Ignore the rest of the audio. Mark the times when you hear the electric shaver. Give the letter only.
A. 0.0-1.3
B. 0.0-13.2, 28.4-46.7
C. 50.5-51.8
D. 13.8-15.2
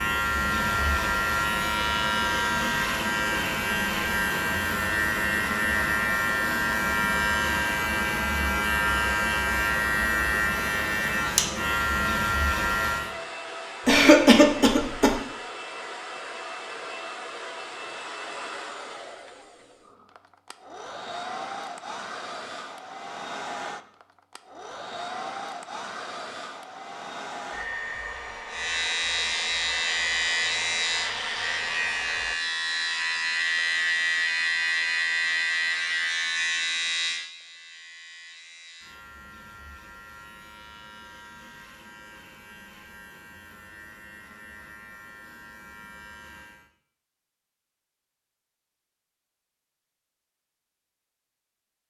B.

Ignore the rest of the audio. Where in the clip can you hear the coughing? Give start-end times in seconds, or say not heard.
13.8-15.2.